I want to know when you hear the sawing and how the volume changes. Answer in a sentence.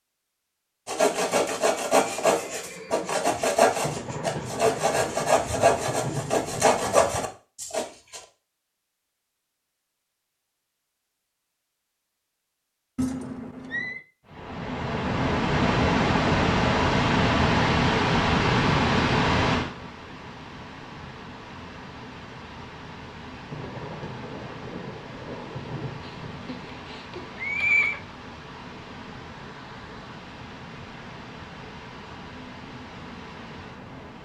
The sawing can be heard from 0.8 to 8.2 s, at a steady volume.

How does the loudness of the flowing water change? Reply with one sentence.
The volume of the flowing water goes down.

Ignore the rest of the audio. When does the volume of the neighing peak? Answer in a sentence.
The loudest moment of the neighing is at 28 seconds.